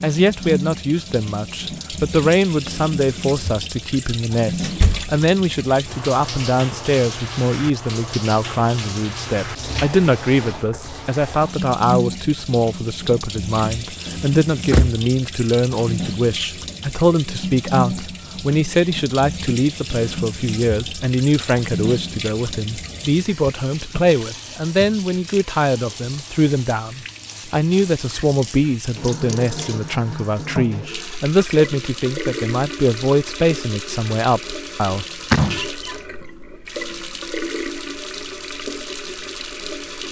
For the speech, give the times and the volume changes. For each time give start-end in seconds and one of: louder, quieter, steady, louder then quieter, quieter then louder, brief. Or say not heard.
0.0-35.0 steady.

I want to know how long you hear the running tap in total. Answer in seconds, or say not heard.
40 s.